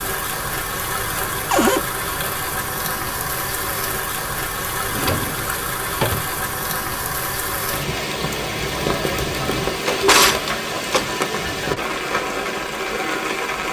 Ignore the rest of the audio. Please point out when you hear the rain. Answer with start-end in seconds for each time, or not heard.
0.0-13.6.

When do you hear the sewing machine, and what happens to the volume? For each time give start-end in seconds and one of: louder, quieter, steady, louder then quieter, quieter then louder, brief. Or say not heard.
not heard.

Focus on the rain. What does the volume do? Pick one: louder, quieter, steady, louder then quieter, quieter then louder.
steady.